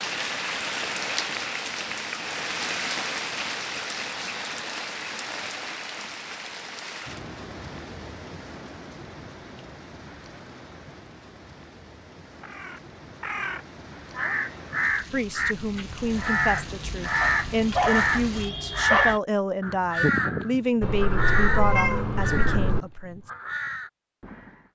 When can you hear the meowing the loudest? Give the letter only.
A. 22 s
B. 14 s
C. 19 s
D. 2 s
A.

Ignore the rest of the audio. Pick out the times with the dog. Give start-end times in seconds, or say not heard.
17.2-19.2.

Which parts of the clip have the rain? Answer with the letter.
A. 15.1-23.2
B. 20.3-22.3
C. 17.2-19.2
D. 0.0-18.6
D.